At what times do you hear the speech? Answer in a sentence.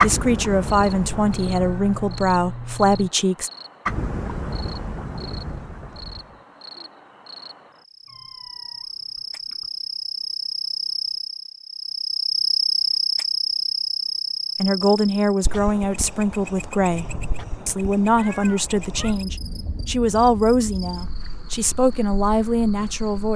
The speech can be heard from 0.0 to 3.5 s, from 14.6 to 17.1 s and from 17.6 to 23.3 s.